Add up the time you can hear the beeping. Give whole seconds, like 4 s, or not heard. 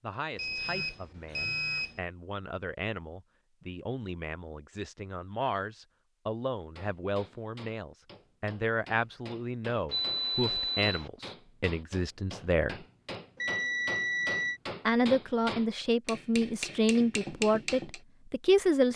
4 s.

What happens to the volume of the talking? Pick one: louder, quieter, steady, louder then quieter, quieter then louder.
louder.